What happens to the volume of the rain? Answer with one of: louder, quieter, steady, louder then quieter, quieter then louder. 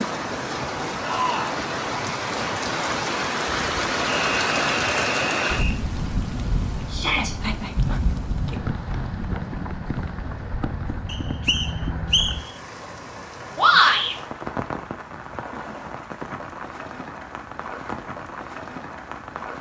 quieter.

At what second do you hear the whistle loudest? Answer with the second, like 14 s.
12 s.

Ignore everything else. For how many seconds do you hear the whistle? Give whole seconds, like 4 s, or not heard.
3 s.